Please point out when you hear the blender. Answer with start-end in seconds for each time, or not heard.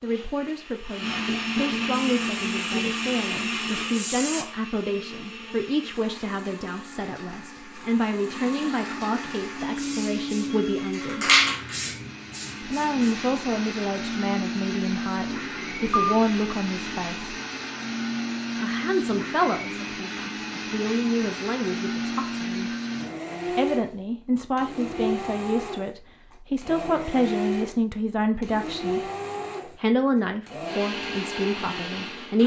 0.0-32.4.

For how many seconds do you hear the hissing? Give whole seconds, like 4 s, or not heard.
6 s.